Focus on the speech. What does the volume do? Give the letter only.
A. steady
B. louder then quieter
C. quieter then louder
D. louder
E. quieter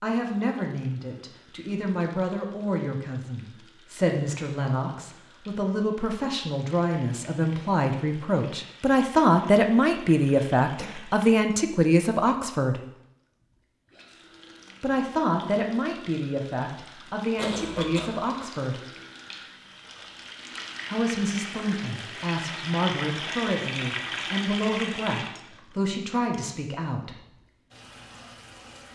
B.